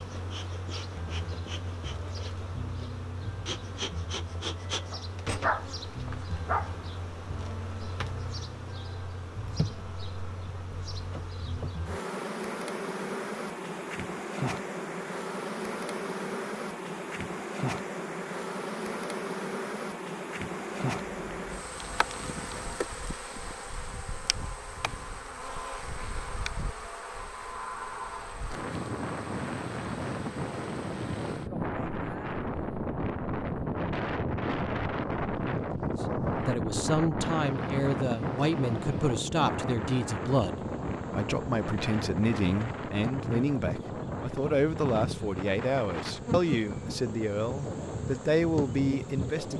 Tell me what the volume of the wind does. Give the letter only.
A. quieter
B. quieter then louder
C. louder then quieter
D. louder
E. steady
C.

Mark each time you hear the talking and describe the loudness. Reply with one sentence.
You can hear the talking from 36.0 to 49.5 s, at a steady volume.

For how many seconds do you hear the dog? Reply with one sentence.
You can hear the dog for 2 seconds altogether.